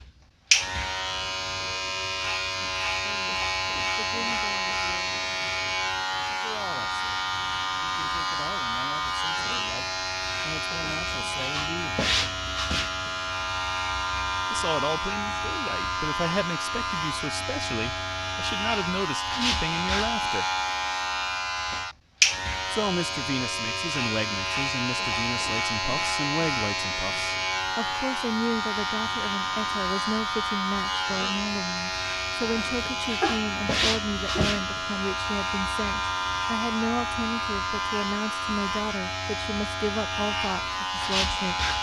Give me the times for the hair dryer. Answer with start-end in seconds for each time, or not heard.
not heard.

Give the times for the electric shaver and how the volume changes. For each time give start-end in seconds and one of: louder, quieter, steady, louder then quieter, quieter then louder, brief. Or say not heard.
0.0-41.7 steady.